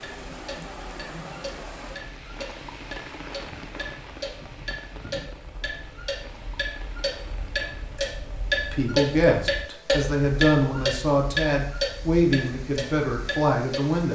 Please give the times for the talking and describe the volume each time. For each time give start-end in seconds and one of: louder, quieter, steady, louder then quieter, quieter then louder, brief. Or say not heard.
8.7-14.0 steady.